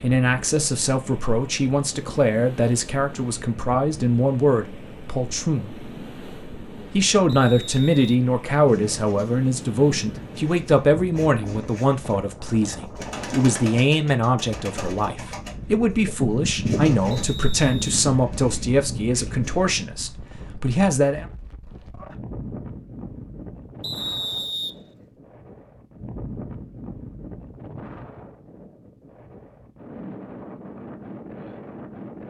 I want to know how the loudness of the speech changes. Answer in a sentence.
The loudness of the speech stays about the same.